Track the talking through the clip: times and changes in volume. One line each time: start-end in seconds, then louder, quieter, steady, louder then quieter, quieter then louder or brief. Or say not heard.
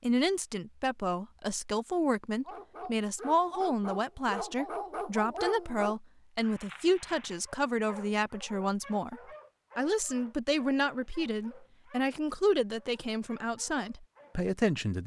0.0-15.0 steady.